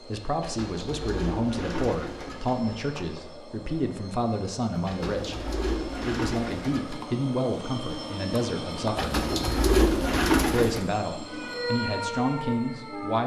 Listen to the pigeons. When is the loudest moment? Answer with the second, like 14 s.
10 s.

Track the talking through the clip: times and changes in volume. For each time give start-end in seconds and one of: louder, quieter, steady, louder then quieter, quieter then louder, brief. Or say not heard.
0.0-9.2 steady
10.4-13.2 brief.